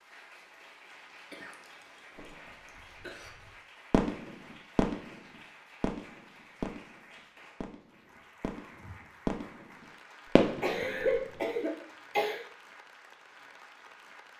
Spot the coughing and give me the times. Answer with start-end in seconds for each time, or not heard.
1.3-3.3, 10.6-12.4.